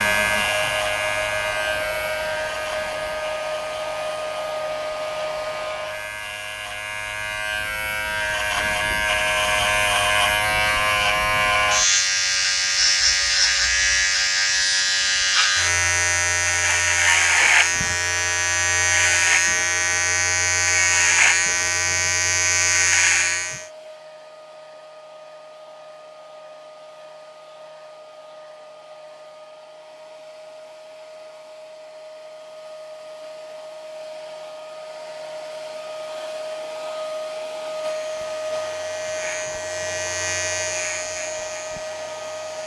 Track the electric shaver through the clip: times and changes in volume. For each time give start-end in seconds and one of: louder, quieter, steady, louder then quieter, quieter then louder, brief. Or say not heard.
0.0-23.6 louder
37.9-42.6 louder then quieter.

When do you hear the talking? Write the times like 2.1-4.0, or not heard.
not heard.